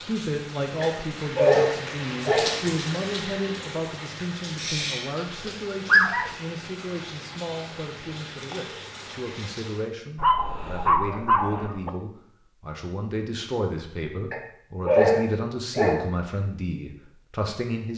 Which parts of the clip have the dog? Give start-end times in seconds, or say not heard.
0.8-2.6, 4.5-6.3, 10.2-11.9, 14.3-16.1.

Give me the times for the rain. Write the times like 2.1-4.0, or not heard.
0.0-9.9.